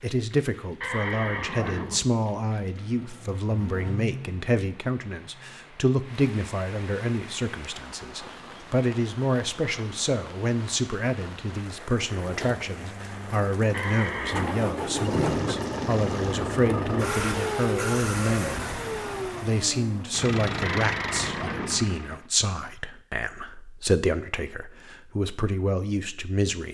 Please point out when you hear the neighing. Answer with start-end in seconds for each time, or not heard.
0.8-2.1, 13.7-14.7, 20.6-21.9.